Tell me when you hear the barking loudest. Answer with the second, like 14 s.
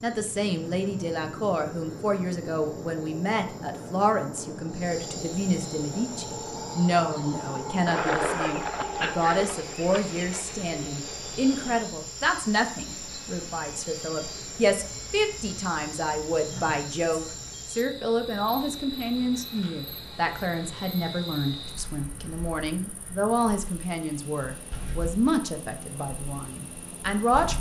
8 s.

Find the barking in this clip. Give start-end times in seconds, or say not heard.
7.8-10.4.